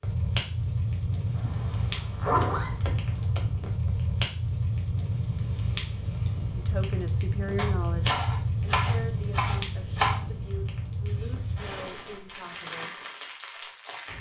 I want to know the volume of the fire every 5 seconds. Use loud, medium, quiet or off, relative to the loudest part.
loud, loud, medium.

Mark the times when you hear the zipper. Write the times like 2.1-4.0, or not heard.
1.9-2.7, 11.1-11.7.